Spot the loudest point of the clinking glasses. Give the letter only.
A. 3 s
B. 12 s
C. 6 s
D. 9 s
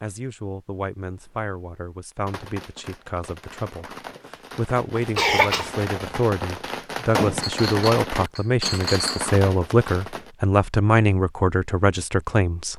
D.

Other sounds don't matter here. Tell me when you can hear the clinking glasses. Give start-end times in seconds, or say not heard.
7.4-9.3.